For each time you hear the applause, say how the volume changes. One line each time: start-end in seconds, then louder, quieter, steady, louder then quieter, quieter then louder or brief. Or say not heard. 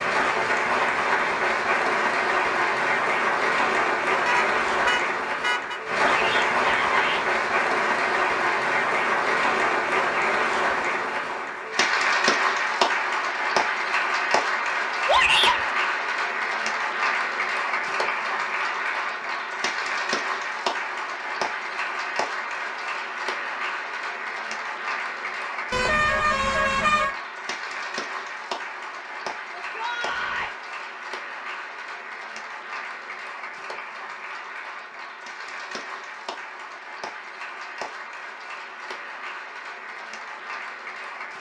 0.0-41.3 quieter.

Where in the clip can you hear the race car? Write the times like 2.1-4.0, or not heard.
not heard.